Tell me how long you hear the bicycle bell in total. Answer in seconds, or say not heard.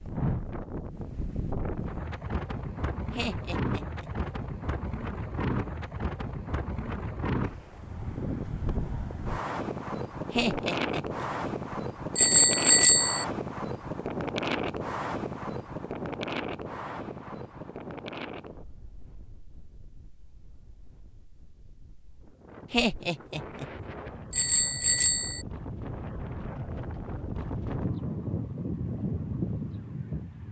2 s.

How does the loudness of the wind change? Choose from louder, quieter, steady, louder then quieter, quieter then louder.
quieter then louder.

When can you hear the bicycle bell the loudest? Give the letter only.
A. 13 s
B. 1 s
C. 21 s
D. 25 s
A.